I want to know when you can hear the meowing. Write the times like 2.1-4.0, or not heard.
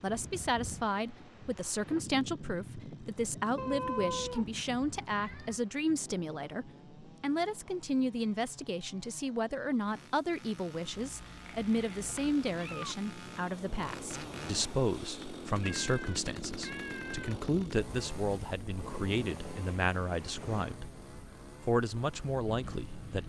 3.5-5.6, 10.9-12.9, 15.6-17.4.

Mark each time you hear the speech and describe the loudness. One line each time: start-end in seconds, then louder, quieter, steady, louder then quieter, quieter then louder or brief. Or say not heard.
0.0-20.9 steady
21.6-23.2 brief.